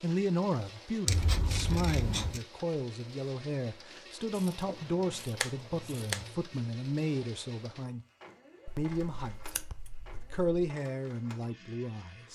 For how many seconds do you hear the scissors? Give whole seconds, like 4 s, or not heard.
5 s.